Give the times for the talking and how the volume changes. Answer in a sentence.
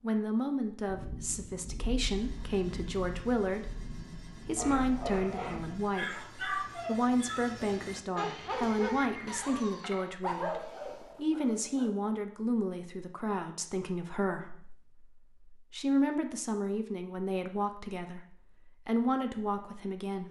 The talking can be heard from 0.0 to 20.2 s, at a steady volume.